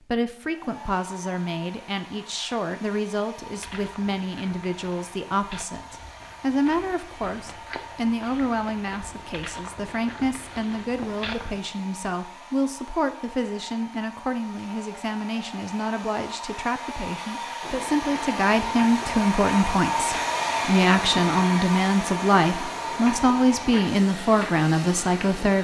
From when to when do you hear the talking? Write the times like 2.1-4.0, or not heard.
0.0-25.5.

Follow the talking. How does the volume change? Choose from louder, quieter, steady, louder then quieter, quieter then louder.
louder.